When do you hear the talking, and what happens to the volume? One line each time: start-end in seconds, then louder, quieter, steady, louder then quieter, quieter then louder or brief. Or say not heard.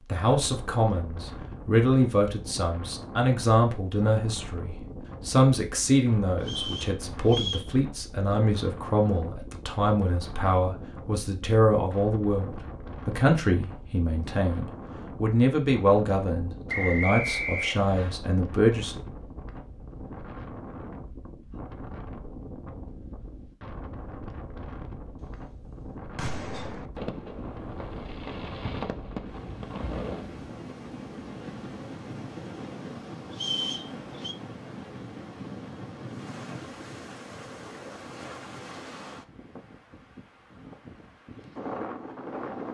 0.1-19.0 steady.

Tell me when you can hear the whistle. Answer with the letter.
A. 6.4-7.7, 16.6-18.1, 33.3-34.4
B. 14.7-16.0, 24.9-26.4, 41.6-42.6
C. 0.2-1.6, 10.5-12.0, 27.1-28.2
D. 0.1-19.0
A.